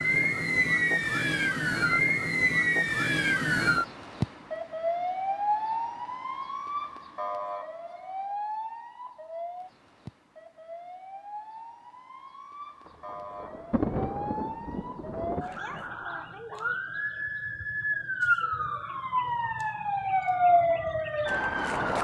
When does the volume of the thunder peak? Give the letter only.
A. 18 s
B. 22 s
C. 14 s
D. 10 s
C.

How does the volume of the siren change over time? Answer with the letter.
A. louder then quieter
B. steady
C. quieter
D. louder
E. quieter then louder
E.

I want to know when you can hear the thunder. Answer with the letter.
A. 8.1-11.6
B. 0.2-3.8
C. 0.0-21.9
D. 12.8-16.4
D.